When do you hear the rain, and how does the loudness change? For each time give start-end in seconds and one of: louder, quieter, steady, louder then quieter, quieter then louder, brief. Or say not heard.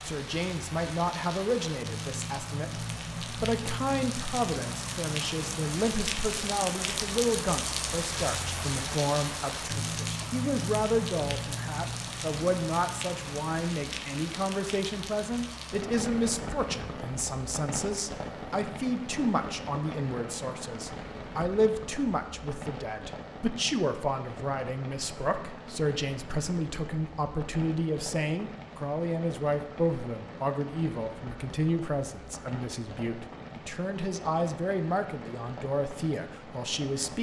0.0-37.1 quieter.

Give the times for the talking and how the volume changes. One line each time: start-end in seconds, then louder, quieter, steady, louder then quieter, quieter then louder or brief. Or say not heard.
0.0-37.1 steady.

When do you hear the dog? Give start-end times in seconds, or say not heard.
not heard.